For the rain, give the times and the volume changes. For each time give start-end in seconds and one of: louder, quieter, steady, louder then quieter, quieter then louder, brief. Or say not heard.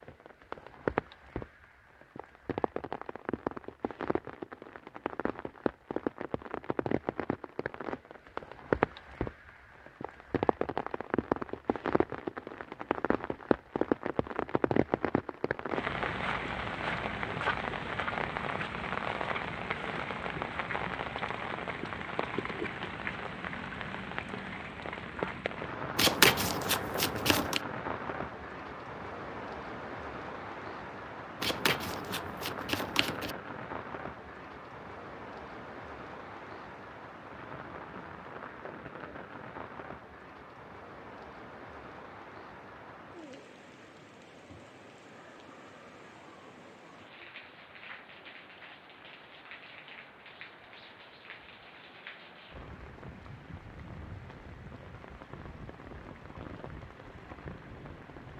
0.0-58.3 quieter.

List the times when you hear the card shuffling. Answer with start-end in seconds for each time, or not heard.
25.9-27.6, 31.4-33.4.